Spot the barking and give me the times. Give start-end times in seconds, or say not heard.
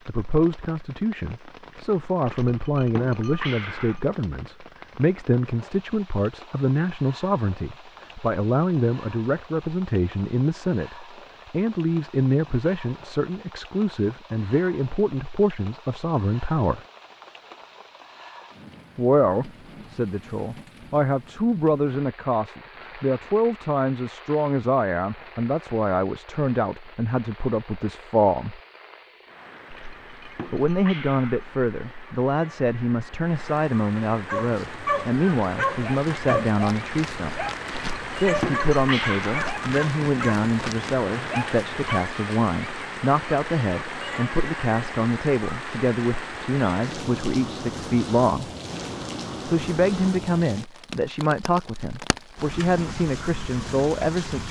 34.2-42.1.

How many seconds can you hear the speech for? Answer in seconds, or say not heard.
49 s.